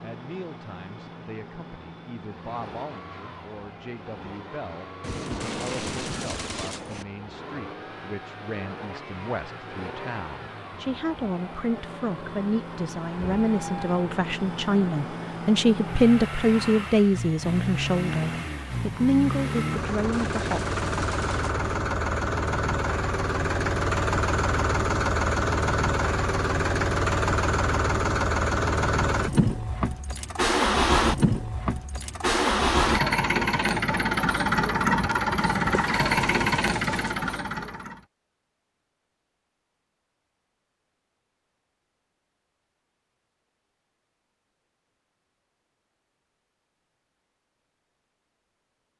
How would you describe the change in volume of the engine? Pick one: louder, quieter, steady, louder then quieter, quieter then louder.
louder.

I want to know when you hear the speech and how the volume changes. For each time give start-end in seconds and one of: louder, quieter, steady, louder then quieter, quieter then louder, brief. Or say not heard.
0.0-20.6 louder.